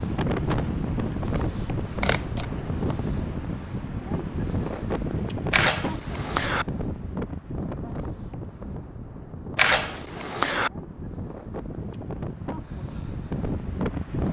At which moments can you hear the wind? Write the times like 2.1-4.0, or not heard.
0.0-14.2.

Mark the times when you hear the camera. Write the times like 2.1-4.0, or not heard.
0.9-2.5, 5.5-6.7, 9.6-10.7.